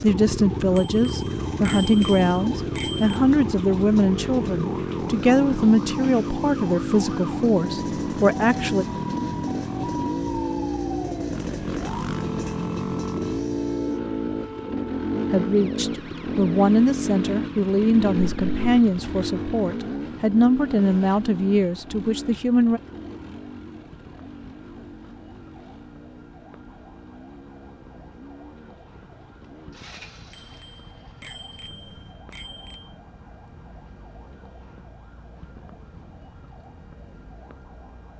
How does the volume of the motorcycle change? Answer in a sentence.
The loudness of the motorcycle goes down.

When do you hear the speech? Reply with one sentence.
You can hear the speech from 0.0 to 8.8 s and from 15.3 to 22.8 s.